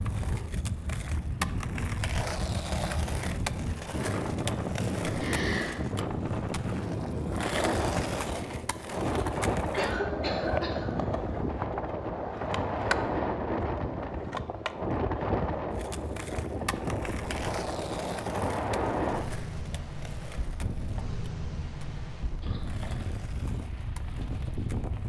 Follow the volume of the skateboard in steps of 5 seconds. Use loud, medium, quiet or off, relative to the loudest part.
loud, loud, loud, medium, quiet.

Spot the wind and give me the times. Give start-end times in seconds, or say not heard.
0.0-25.0.